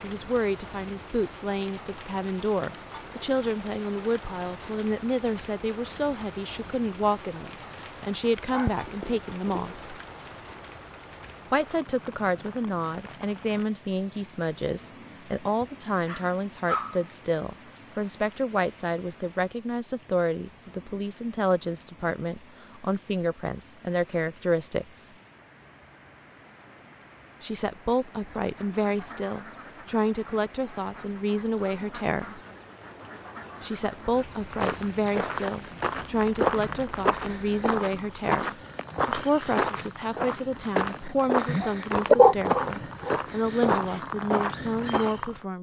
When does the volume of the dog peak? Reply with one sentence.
The loudest moment of the dog is at 42 seconds.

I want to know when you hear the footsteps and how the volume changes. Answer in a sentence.
You can hear the footsteps from 34.5 to 45.4 s, at a steady volume.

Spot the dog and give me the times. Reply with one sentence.
The dog can be heard from 8.5 to 9.9 s, from 15.6 to 17.1 s and from 41.5 to 43.2 s.